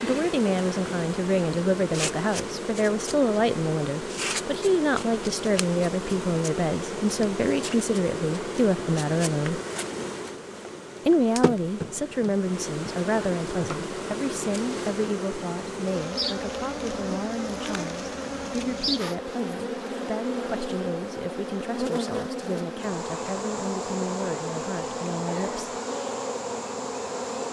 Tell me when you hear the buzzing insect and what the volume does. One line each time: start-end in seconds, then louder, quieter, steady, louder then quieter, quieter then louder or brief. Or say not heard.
0.0-27.4 steady.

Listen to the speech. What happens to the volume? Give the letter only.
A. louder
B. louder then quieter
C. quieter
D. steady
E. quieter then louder
C.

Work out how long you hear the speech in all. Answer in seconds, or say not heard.
24 s.